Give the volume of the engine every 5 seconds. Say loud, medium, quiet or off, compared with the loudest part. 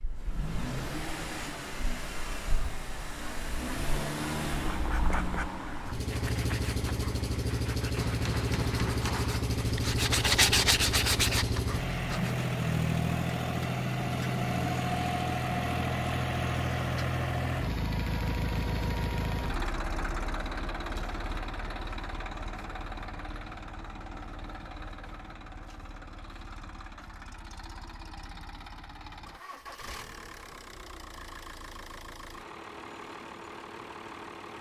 medium, loud, loud, loud, medium, quiet, quiet.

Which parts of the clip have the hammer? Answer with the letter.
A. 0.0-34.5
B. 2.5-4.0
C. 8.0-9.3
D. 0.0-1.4
C.